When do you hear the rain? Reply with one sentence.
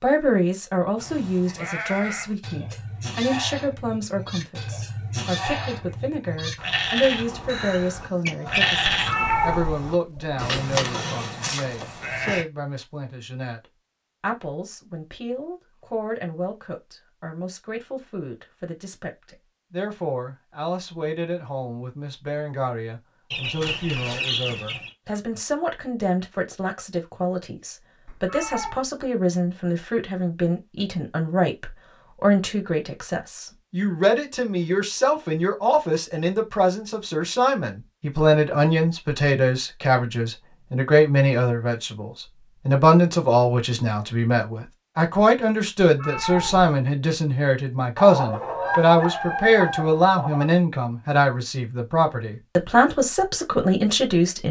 You can't hear the rain here.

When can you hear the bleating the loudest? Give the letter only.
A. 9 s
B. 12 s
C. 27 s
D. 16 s
A.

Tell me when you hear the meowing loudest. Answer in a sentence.
The volume of the meowing peaks at 9 seconds.